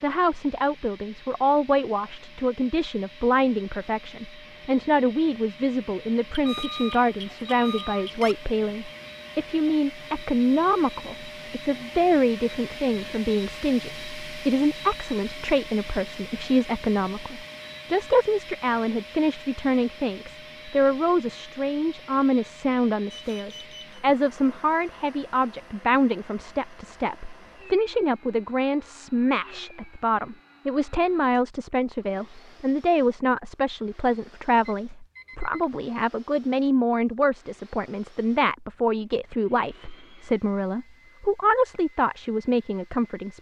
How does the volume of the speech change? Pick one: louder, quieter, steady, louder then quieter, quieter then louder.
steady.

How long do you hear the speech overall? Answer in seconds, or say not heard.
43 s.